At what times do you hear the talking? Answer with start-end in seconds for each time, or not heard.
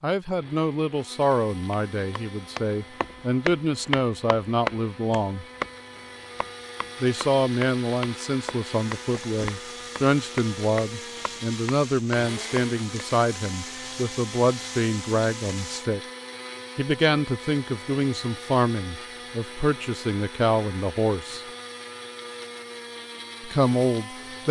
0.0-5.5, 7.0-16.0, 16.8-21.4, 23.4-24.4.